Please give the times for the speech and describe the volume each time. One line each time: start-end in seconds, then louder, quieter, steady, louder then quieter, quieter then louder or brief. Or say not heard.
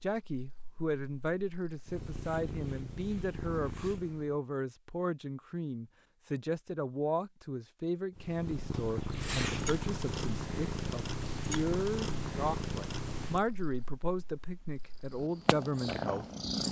0.0-16.2 steady.